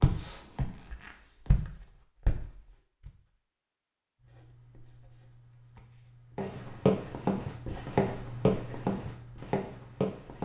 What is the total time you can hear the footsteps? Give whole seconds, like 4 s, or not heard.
7 s.